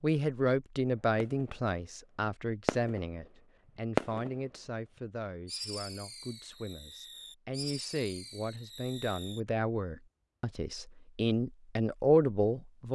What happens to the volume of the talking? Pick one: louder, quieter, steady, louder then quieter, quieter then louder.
quieter then louder.